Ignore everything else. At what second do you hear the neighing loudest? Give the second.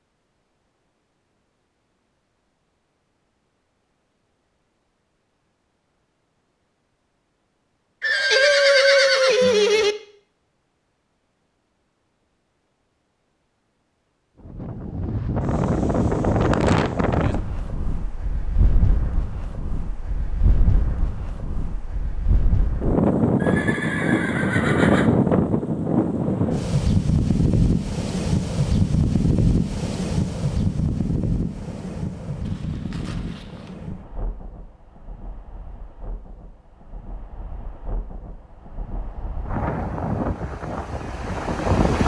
9 s.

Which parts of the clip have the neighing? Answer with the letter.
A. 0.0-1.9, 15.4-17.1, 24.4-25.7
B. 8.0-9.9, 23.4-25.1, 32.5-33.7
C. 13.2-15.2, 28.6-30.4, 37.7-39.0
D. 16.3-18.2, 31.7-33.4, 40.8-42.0
B.